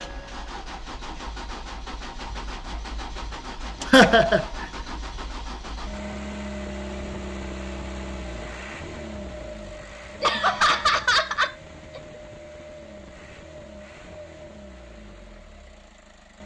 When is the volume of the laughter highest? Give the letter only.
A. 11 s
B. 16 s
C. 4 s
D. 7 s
C.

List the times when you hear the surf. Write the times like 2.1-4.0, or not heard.
not heard.